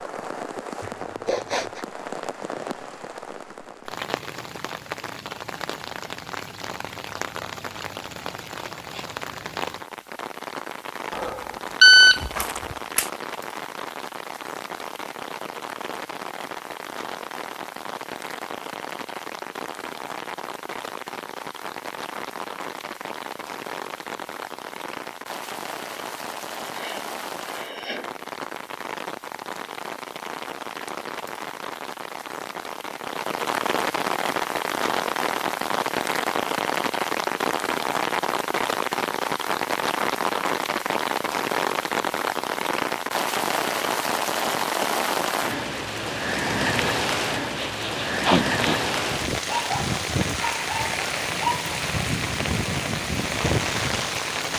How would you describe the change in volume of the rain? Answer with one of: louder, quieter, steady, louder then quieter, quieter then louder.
louder.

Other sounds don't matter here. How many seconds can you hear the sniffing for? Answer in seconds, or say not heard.
4 s.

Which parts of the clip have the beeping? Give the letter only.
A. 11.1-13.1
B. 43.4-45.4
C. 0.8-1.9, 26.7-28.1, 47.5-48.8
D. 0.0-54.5
A.